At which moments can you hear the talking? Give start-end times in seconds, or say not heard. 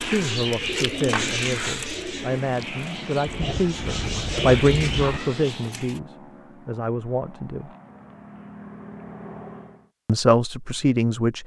0.0-7.7, 10.1-11.4.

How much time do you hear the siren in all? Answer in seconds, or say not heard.
not heard.